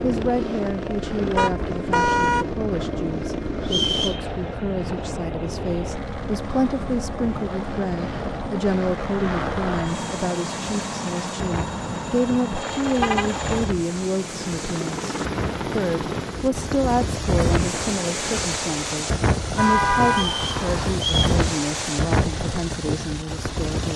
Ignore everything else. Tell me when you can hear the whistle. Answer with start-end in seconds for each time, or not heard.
3.6-4.2, 20.1-21.4.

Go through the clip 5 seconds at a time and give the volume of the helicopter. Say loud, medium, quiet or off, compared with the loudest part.
loud, loud, loud, loud, medium.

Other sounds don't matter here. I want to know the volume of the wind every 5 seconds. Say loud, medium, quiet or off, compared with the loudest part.
medium, medium, medium, loud, loud.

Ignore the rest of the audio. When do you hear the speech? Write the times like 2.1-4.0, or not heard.
0.0-23.9.